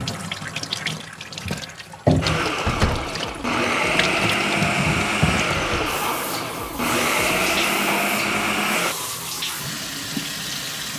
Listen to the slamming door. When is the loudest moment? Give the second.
3 s.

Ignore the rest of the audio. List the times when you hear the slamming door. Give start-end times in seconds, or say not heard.
2.6-3.1, 5.5-6.0.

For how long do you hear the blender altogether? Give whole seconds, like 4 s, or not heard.
7 s.